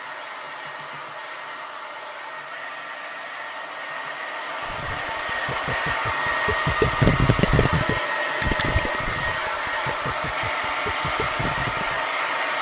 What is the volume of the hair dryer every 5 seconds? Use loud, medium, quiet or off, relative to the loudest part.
medium, loud, loud.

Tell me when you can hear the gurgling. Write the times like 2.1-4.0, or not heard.
4.6-12.1.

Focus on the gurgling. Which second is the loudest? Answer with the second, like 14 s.
7 s.